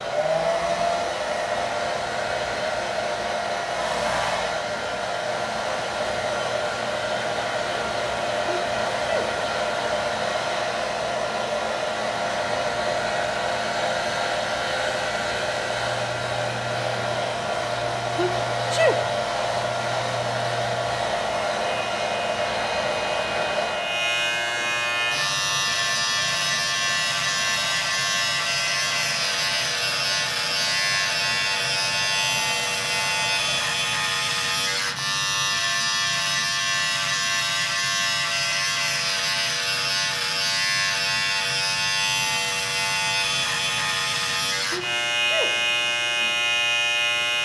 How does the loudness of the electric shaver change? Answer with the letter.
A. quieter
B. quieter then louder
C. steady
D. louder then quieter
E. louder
E.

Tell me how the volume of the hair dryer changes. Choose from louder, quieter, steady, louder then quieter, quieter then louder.
quieter.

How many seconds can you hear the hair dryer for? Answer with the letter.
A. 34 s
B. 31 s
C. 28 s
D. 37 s
A.